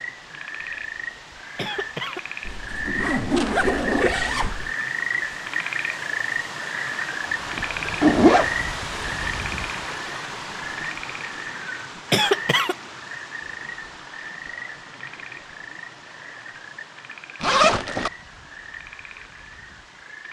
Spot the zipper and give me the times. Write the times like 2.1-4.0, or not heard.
2.5-4.7, 7.5-8.5, 17.4-18.1.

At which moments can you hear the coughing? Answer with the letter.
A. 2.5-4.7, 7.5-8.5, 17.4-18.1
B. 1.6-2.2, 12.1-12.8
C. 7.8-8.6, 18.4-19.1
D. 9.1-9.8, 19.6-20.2
B.